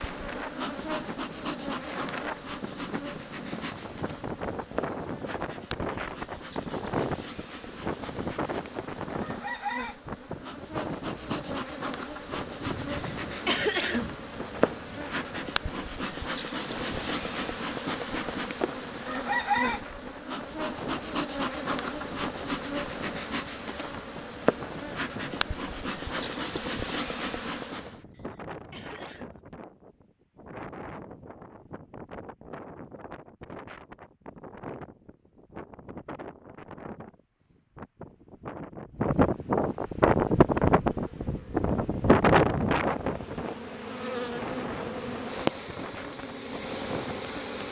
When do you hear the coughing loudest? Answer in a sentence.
The volume of the coughing peaks at 14 seconds.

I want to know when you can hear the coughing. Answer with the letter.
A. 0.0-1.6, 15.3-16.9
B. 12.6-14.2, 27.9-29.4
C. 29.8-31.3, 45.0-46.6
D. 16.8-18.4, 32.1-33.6
B.